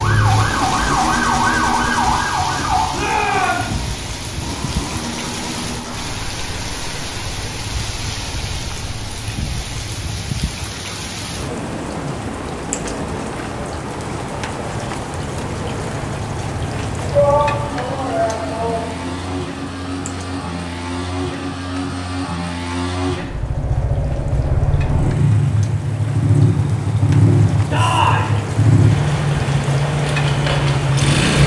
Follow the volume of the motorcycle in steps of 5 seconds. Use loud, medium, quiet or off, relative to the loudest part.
medium, quiet, quiet, quiet, medium, loud, loud.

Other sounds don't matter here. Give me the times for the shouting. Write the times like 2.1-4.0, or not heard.
2.9-3.8, 17.1-18.9, 27.7-28.3.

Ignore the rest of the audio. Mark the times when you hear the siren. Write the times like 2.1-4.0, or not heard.
0.0-2.9.